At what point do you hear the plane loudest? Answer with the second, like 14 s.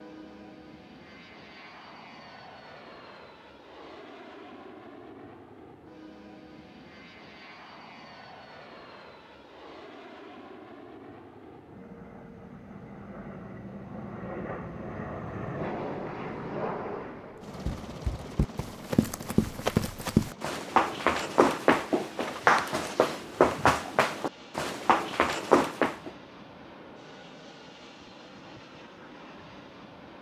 16 s.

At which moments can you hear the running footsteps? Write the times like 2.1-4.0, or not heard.
17.6-26.1.